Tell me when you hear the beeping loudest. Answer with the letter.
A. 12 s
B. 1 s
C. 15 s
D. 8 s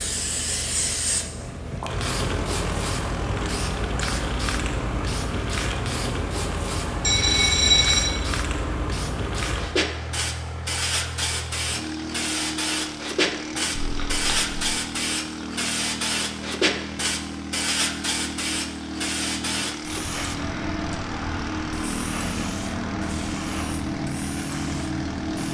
D.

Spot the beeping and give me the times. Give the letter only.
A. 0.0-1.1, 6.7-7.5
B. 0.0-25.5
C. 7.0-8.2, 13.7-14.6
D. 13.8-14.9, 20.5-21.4
C.